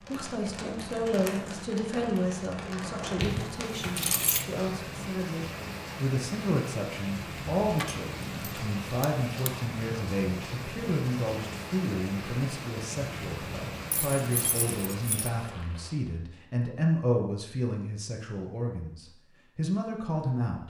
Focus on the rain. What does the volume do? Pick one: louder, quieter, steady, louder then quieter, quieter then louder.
steady.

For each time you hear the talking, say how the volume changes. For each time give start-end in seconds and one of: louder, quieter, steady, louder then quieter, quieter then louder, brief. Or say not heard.
0.0-20.6 steady.